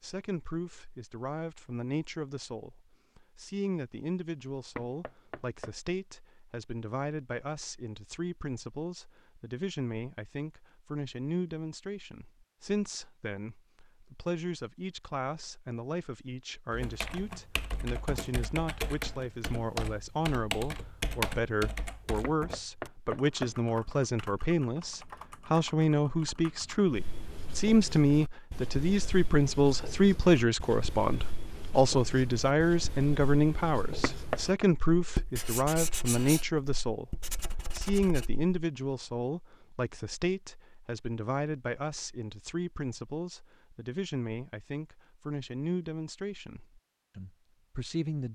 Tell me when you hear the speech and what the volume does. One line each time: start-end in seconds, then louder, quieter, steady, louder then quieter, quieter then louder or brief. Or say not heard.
0.0-48.2 louder then quieter.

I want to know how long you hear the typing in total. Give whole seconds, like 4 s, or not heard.
10 s.